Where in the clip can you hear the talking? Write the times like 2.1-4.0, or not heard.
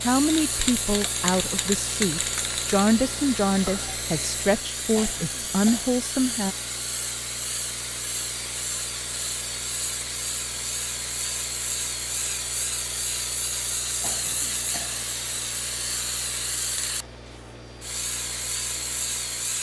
0.0-6.5.